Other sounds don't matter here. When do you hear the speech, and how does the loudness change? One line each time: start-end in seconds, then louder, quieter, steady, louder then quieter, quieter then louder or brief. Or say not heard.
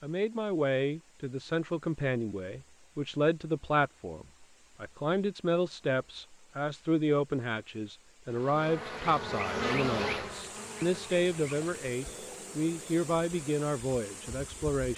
0.0-14.9 steady.